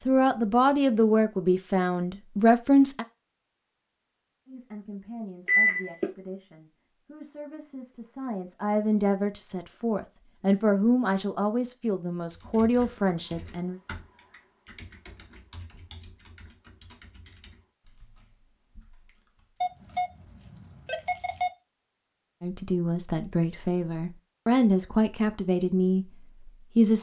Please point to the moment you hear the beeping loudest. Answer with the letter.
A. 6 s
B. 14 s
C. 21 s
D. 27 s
A.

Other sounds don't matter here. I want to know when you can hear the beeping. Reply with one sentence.
You can hear the beeping from 5.5 to 6.1 s and from 19.6 to 21.5 s.